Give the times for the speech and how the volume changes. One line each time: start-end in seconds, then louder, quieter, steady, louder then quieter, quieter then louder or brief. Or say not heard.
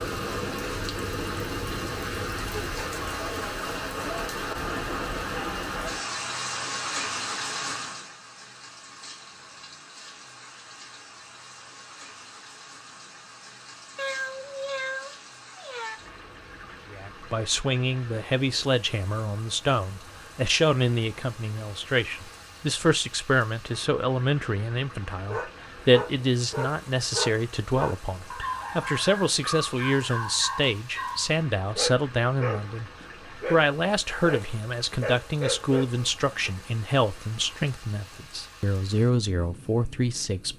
16.9-40.5 steady.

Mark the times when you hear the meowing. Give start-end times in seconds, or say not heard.
13.9-16.0.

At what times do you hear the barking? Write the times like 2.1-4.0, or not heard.
25.2-36.5.